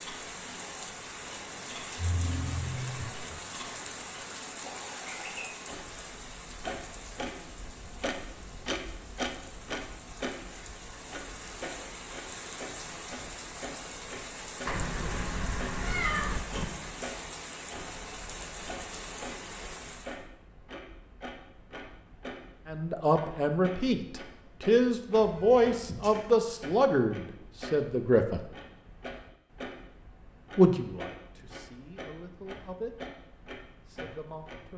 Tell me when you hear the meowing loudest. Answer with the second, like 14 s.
16 s.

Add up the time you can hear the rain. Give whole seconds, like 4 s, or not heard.
20 s.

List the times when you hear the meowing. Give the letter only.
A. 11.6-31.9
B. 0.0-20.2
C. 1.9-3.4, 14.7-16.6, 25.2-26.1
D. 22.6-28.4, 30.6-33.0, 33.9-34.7
C.